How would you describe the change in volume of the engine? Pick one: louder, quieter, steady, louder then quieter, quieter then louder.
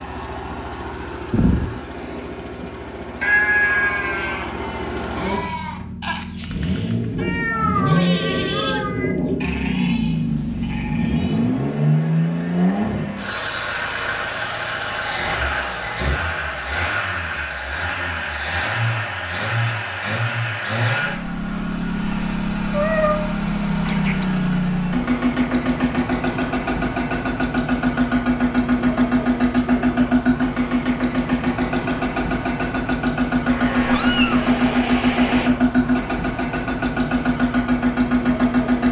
louder.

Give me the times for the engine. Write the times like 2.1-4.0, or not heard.
0.0-38.8.